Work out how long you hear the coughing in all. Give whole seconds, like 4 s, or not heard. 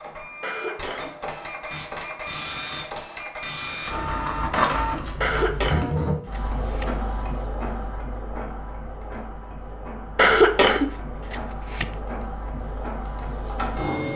4 s.